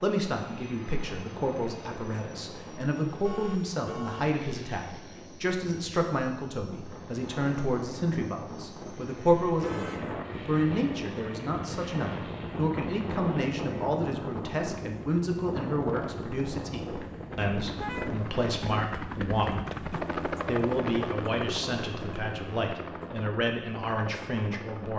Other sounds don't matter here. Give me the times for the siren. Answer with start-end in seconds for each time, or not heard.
not heard.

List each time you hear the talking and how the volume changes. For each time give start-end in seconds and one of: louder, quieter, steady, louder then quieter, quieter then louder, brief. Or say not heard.
0.0-24.9 steady.